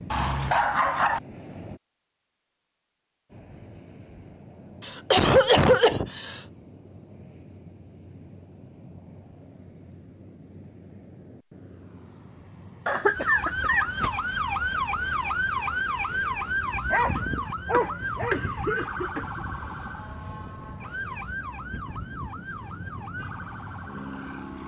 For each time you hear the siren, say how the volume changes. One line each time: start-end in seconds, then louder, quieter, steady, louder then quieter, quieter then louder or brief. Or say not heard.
13.2-24.6 quieter.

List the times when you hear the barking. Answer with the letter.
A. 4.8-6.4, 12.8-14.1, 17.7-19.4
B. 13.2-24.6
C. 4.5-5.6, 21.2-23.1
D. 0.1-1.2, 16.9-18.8
D.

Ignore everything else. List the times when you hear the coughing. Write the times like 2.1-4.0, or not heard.
4.8-6.4, 12.8-14.1, 17.7-19.4.